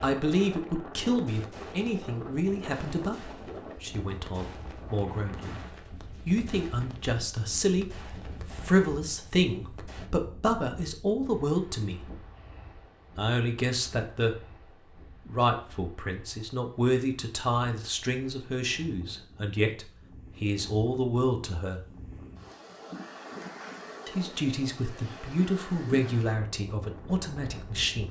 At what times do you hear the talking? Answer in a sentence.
You can hear the talking from 0.0 to 5.7 s, from 6.2 to 7.8 s, from 8.5 to 12.1 s, from 13.2 to 14.3 s, from 15.2 to 21.8 s and from 24.1 to 28.0 s.